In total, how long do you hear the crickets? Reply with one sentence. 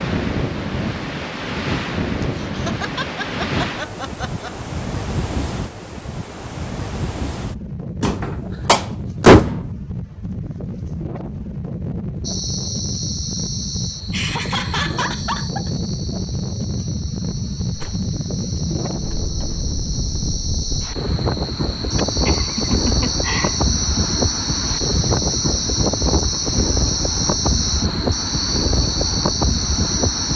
The crickets can be heard for 18 seconds in total.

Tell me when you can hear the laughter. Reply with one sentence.
The laughter can be heard from 2.2 to 4.5 s, from 14.1 to 15.8 s and from 21.9 to 23.6 s.